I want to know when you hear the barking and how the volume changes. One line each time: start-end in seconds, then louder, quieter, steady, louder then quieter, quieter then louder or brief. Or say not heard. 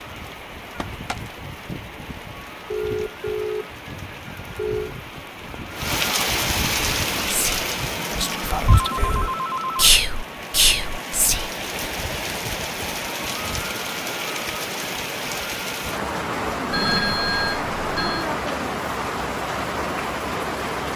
not heard.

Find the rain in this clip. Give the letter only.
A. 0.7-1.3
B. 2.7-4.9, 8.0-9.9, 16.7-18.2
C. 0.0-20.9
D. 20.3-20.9
C.